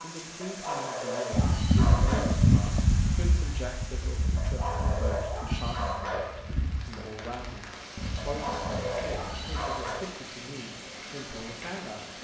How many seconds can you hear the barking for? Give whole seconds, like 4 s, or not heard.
6 s.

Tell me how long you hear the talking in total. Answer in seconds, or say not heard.
12 s.